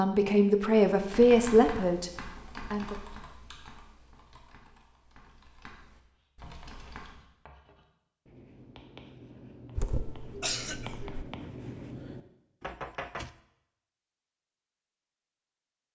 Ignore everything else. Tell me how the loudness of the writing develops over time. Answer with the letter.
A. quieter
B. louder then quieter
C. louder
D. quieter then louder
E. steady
C.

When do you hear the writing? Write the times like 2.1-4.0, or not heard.
6.2-12.8.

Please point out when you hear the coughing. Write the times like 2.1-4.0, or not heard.
9.8-11.2.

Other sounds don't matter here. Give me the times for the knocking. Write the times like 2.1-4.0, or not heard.
12.6-13.3.